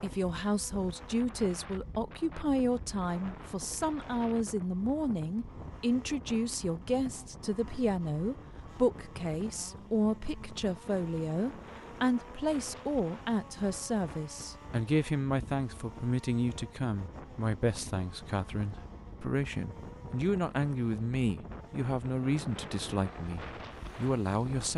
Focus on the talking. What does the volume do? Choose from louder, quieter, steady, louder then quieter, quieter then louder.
steady.